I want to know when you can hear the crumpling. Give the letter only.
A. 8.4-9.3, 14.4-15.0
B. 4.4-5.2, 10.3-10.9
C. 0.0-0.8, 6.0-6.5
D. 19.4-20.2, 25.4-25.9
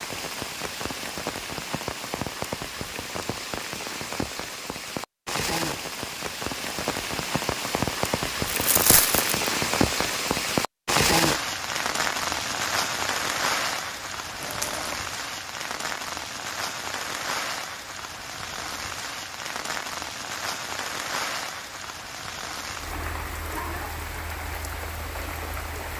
A.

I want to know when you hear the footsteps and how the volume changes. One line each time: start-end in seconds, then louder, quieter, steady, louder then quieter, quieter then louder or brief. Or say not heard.
not heard.